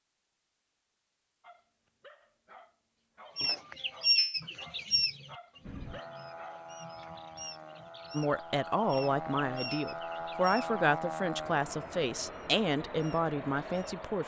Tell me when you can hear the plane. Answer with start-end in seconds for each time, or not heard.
5.6-14.2.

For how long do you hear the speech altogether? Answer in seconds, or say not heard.
6 s.